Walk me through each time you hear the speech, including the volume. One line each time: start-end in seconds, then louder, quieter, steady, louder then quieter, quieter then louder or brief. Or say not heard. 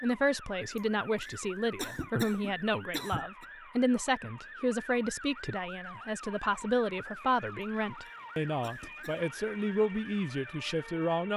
0.0-11.3 steady.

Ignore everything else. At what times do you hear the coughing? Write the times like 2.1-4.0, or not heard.
0.8-3.5, 7.6-9.3.